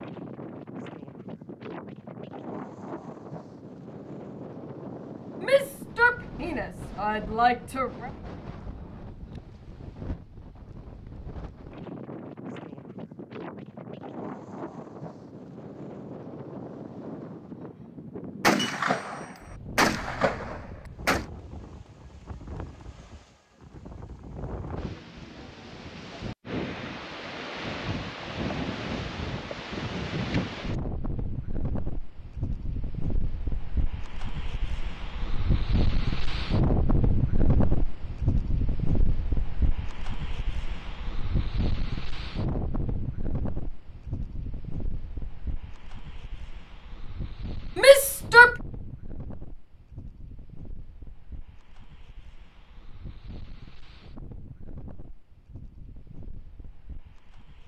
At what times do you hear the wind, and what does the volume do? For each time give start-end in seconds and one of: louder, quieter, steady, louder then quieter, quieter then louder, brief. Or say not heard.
0.0-57.6 louder then quieter.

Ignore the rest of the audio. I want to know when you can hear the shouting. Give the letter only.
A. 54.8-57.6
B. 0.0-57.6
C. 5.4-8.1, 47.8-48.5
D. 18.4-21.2
C.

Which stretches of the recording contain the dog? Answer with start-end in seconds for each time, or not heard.
not heard.